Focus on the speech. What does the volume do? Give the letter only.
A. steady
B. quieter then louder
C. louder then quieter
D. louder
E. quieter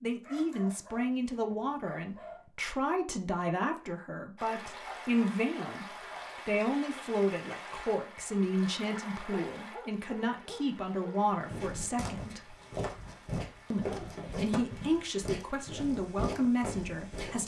A.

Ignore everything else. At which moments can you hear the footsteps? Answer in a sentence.
You can hear the footsteps from 11.4 to 17.4 s.